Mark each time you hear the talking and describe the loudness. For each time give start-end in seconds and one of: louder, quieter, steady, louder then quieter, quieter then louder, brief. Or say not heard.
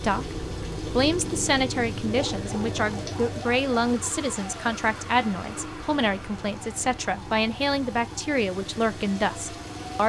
0.0-10.0 steady.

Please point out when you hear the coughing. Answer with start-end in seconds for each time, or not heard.
not heard.